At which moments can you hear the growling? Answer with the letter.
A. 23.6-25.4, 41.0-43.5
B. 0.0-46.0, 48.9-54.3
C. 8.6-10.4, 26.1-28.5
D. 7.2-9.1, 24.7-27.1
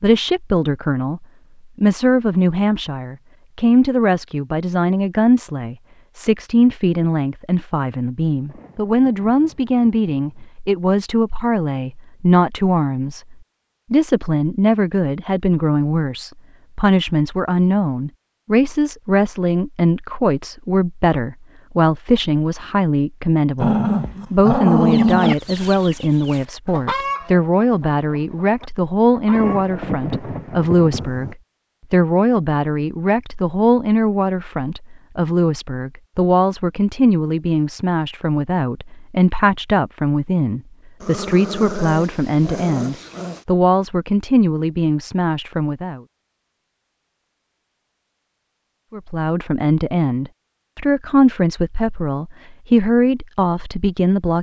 A.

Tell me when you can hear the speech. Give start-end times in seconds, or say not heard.
0.0-46.0, 48.9-54.3.